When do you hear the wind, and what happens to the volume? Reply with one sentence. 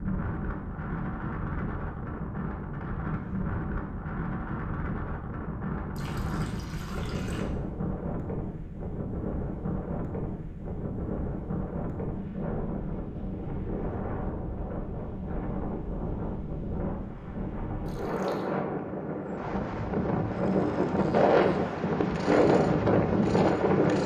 The wind can be heard from 0.0 to 24.0 s, getting louder.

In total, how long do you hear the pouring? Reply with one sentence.
The pouring can be heard for 2 seconds in total.